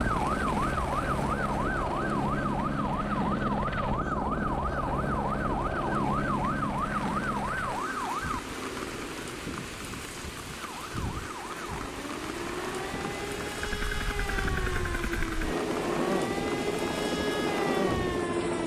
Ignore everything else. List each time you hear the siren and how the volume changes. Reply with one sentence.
The siren can be heard from 0.0 to 8.4 s, at a steady volume; and from 10.6 to 18.6 s, getting louder.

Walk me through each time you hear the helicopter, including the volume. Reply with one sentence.
You can hear the helicopter from 0.0 to 18.6 s, getting quieter then louder.